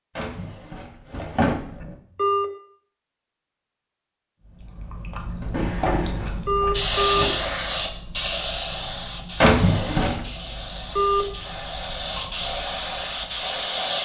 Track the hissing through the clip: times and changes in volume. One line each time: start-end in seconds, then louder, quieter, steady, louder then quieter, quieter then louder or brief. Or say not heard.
6.7-13.9 quieter then louder.